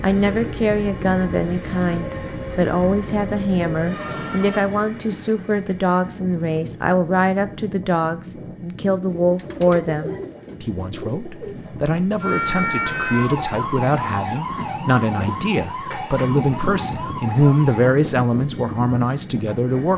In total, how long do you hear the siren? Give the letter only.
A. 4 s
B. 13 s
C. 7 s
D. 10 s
D.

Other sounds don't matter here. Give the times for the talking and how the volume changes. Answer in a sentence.
You can hear the talking from 0.0 to 19.9 s, at a steady volume.